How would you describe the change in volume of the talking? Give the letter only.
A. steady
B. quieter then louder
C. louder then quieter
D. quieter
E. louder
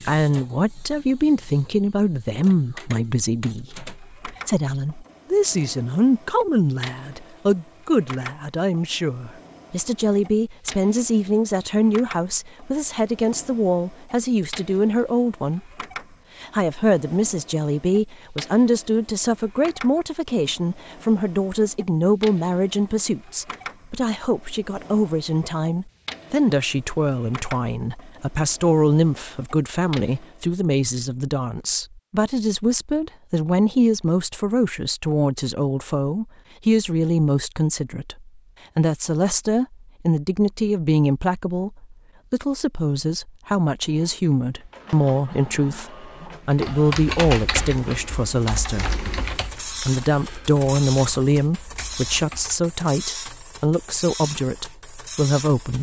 A.